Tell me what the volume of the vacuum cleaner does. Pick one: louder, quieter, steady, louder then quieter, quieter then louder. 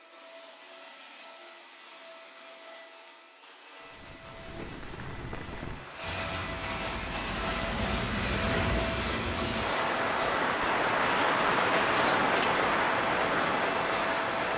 louder.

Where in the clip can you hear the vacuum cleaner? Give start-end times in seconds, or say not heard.
0.0-14.5.